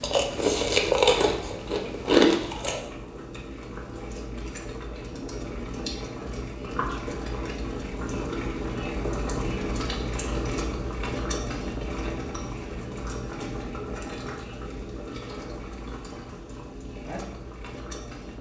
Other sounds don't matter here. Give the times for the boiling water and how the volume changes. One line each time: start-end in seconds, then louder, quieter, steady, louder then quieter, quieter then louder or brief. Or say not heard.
0.0-18.3 louder then quieter.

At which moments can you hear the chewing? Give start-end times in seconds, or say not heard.
0.0-2.8.